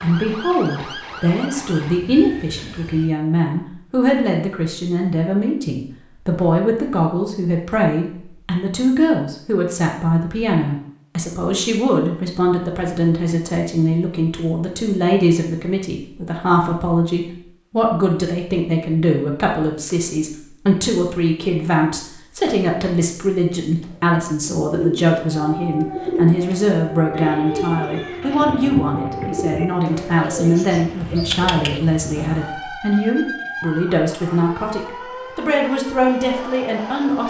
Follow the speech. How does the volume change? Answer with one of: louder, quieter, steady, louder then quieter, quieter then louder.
steady.